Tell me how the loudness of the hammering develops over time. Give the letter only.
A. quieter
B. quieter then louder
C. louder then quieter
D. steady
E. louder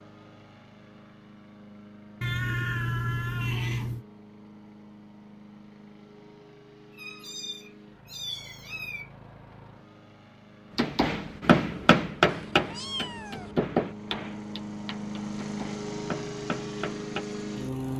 B.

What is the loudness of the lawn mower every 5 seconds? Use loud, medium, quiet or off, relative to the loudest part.
quiet, quiet, medium, loud.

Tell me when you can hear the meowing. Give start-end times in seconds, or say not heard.
2.2-4.0, 7.0-9.1, 12.2-13.6.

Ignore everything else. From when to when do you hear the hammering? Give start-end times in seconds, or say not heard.
10.8-17.2.